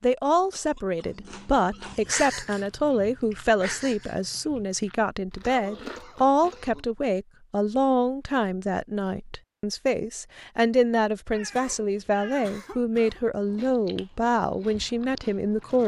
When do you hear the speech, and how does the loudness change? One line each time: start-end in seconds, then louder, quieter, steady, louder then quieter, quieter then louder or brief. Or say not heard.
0.0-15.8 steady.